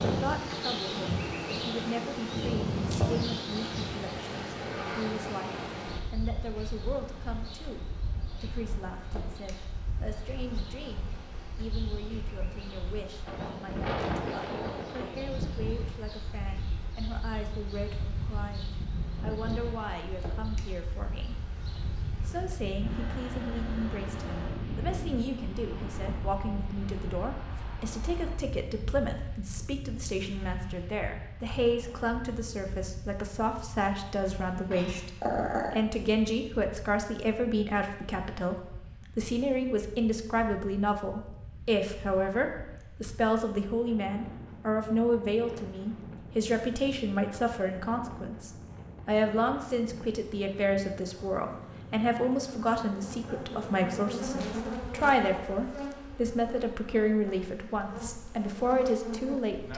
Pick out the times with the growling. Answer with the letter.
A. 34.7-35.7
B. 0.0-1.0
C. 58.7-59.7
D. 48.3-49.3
A.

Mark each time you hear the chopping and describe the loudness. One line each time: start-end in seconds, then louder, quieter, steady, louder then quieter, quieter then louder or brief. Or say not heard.
not heard.